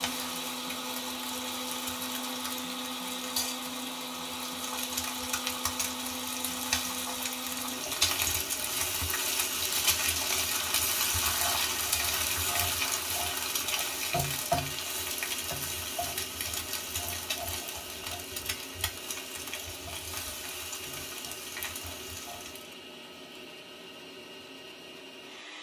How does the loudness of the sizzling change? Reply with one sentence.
The volume of the sizzling goes up, then down.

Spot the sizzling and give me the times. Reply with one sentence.
You can hear the sizzling from 0.0 to 22.7 s.